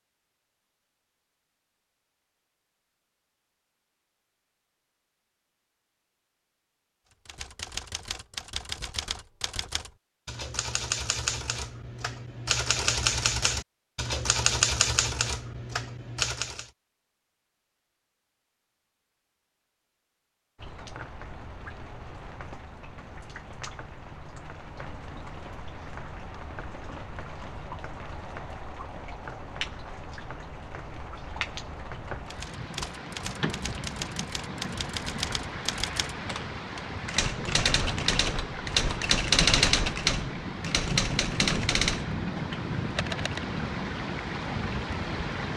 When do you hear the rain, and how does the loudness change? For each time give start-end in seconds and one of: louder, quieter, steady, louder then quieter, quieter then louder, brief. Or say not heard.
20.6-45.5 louder.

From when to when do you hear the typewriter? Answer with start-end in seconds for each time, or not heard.
7.2-16.7, 32.2-43.5.